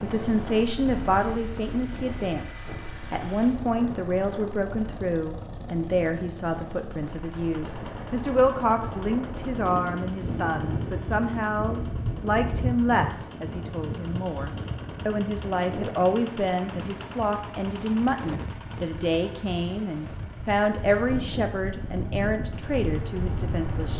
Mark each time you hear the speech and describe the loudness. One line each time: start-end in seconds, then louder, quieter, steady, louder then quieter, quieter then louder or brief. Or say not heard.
0.0-23.9 steady.